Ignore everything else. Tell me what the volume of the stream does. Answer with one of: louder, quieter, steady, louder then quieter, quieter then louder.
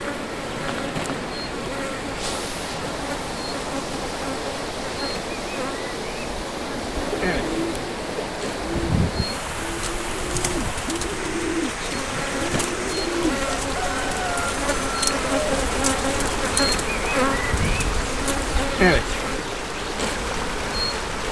steady.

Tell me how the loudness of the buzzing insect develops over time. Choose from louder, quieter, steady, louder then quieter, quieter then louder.
louder.